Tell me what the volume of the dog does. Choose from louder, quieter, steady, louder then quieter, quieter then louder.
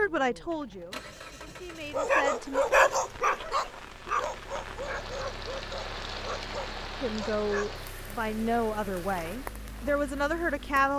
quieter.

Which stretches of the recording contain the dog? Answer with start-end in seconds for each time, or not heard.
1.9-7.8.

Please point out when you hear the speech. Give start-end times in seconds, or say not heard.
0.0-2.6, 7.0-10.9.